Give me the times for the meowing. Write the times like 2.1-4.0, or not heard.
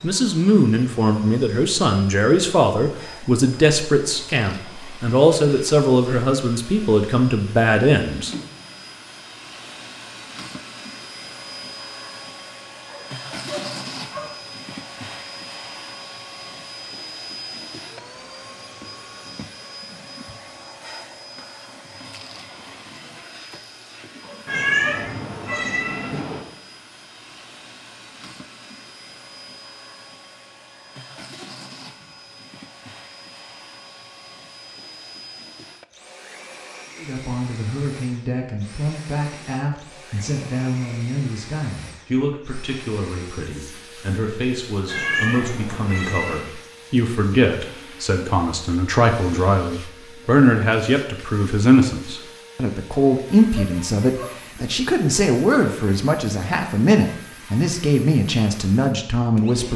24.4-26.4, 44.9-46.5.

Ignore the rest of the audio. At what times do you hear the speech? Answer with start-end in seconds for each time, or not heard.
0.0-8.3, 37.0-59.7.